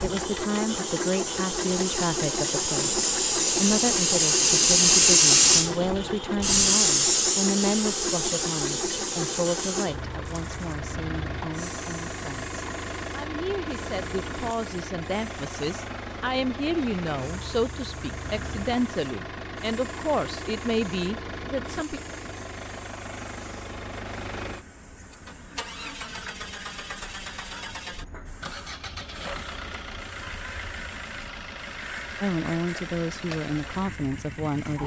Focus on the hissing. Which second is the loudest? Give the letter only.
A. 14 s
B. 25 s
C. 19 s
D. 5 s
D.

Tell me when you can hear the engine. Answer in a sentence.
You can hear the engine from 0.0 to 34.8 s.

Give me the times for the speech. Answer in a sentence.
The speech can be heard from 0.0 to 22.0 s and from 32.2 to 34.8 s.